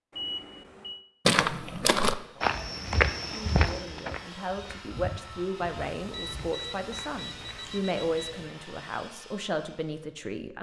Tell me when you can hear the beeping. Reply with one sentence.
The beeping can be heard from 0.1 to 1.0 s and from 6.0 to 8.6 s.